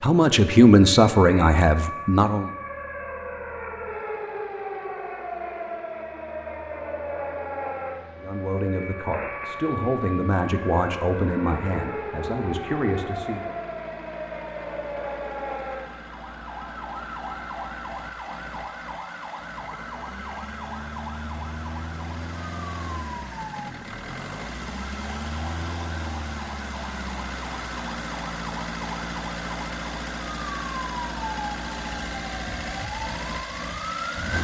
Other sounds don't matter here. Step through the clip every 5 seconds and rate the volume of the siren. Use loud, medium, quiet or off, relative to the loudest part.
loud, loud, loud, loud, medium, medium, loud.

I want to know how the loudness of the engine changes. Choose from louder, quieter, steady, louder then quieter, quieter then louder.
louder.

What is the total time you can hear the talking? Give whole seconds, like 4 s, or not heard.
8 s.